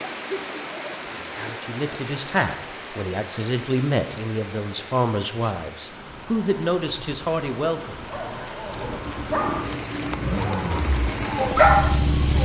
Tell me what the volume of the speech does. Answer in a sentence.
The loudness of the speech stays about the same.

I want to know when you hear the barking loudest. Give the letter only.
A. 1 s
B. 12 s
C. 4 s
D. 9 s
B.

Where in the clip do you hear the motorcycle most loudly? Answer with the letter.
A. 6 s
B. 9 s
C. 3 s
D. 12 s
D.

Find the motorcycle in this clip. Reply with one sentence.
You can hear the motorcycle from 8.7 to 12.4 s.